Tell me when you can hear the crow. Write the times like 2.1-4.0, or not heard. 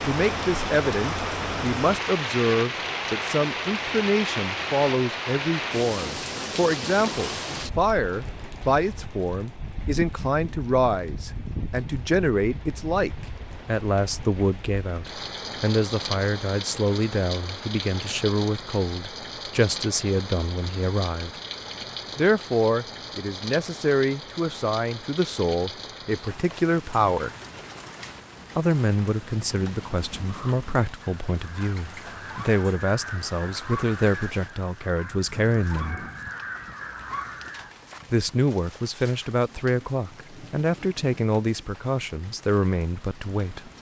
30.2-37.8.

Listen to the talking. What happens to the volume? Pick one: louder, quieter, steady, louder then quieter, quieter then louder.
steady.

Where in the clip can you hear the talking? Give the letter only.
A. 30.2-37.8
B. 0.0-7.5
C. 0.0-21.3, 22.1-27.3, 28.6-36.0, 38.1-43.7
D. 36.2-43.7
C.